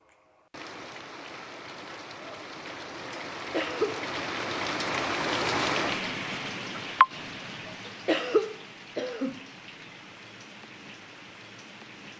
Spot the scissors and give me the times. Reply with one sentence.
The scissors can't be heard in this clip.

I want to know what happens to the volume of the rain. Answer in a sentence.
The volume of the rain goes up, then down.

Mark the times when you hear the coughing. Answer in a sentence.
You can hear the coughing from 3.5 to 4.0 s and from 8.1 to 9.4 s.